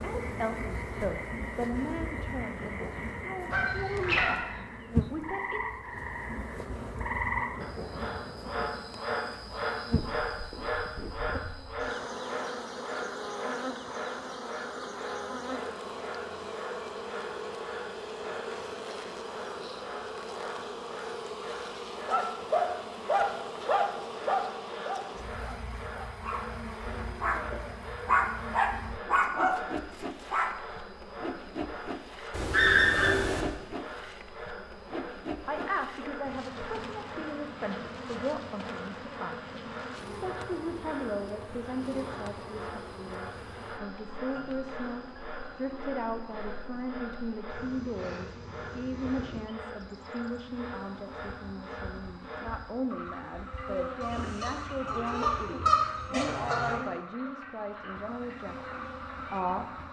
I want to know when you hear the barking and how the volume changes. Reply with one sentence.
You can hear the barking from 22.1 to 30.5 s, getting quieter then louder.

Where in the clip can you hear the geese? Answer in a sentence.
The geese can be heard from 3.5 to 4.3 s, from 32.3 to 33.5 s and from 54.0 to 56.8 s.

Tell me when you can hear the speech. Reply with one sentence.
The speech can be heard from 0.0 to 6.0 s and from 35.5 to 59.8 s.